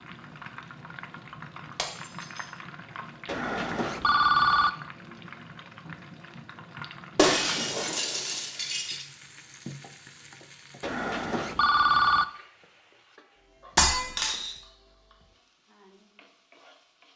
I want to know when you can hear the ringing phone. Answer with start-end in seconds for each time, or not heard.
3.2-4.7, 10.8-12.2.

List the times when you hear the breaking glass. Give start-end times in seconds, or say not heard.
1.8-2.5, 7.2-9.1, 13.8-14.5.